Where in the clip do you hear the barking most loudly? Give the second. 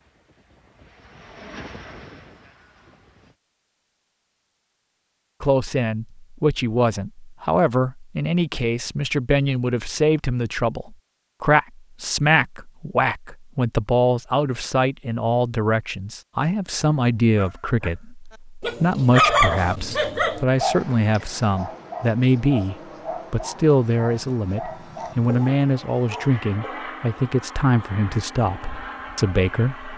19 s.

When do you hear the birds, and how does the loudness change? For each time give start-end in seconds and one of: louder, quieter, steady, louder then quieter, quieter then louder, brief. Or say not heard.
not heard.